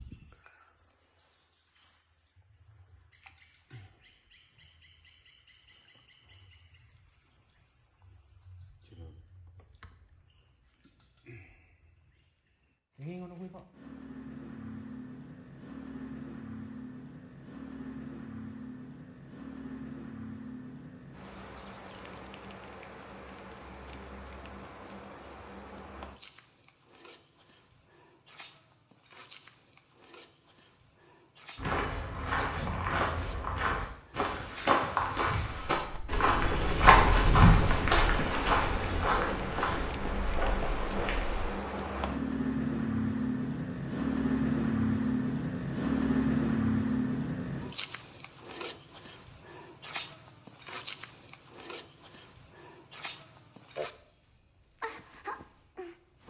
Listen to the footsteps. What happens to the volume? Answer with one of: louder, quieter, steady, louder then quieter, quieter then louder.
louder then quieter.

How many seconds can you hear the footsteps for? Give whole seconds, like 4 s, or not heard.
10 s.